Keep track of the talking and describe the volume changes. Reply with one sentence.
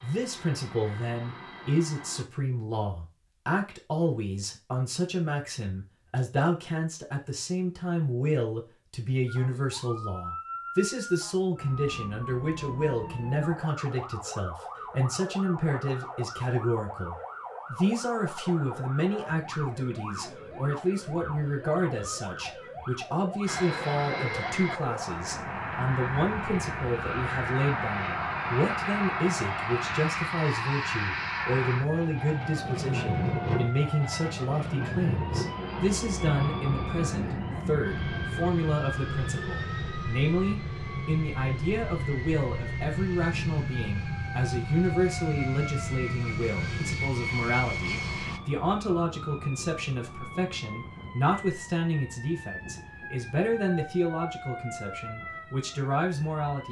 The volume of the talking stays about the same.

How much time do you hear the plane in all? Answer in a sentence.
You can hear the plane for 27 seconds altogether.